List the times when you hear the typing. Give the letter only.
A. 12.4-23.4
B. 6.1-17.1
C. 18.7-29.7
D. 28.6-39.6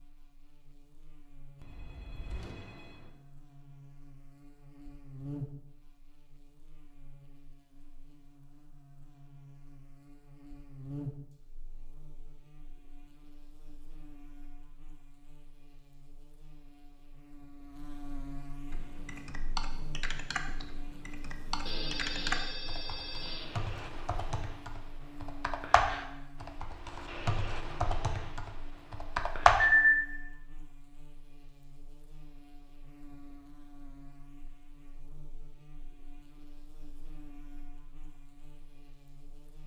C.